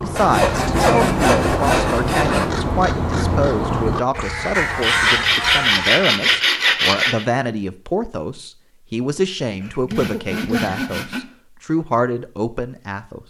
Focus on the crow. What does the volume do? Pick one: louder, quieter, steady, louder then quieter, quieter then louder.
steady.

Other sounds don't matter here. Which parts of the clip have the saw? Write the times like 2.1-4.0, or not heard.
0.1-2.6, 4.8-7.2, 9.5-11.2.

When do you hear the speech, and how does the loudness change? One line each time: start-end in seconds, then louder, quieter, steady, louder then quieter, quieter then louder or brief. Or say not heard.
0.0-13.2 steady.